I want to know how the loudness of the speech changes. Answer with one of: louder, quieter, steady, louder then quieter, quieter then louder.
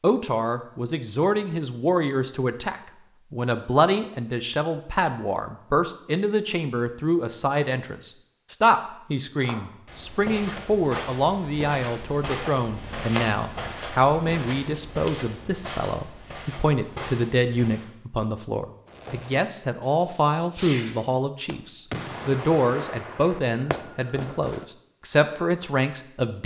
steady.